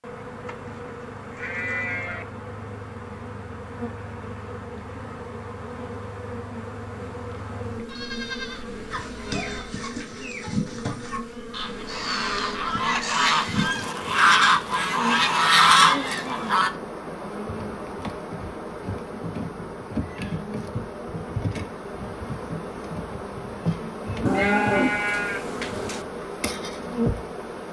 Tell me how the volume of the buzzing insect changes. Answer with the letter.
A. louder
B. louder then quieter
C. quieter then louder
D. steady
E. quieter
A.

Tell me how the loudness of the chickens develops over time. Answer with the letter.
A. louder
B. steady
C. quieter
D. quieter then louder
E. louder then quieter
A.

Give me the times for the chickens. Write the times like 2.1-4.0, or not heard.
8.9-16.7.